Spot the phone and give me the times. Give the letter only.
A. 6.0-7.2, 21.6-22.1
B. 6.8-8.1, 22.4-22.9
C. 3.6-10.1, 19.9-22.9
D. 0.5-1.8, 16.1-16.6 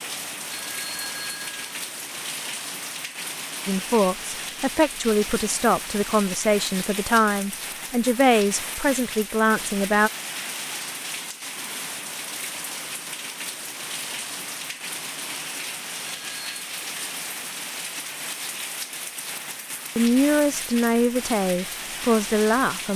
D.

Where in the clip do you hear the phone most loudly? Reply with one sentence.
The loudest moment of the phone is at 1 second.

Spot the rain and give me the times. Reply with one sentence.
You can hear the rain from 0.0 to 22.9 s.